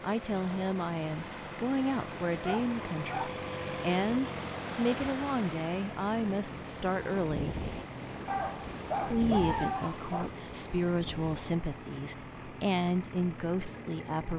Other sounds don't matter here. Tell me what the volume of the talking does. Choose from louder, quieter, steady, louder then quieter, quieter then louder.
steady.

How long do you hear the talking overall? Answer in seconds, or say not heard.
13 s.